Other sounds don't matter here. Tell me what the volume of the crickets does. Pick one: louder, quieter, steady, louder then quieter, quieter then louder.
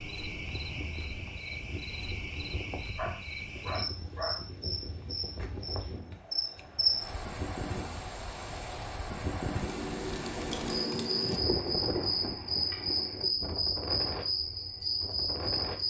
louder.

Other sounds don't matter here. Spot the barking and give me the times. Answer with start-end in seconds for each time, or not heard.
2.5-4.5.